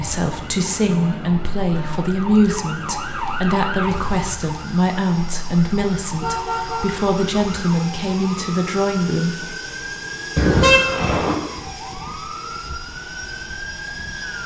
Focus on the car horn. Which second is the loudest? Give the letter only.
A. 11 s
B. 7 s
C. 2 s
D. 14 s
A.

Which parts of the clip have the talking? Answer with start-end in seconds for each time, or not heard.
0.0-9.3.